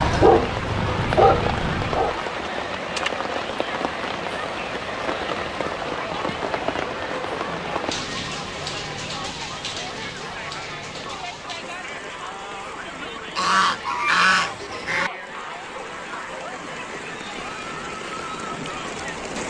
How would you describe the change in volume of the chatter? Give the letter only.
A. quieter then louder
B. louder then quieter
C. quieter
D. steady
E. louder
D.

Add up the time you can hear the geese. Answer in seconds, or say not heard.
2 s.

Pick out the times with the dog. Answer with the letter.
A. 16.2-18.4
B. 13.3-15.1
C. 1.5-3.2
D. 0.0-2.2
D.